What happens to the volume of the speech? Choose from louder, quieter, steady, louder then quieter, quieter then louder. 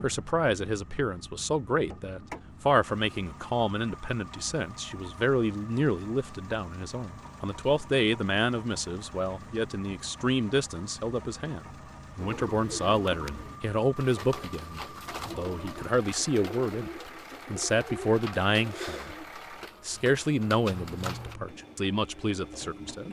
steady.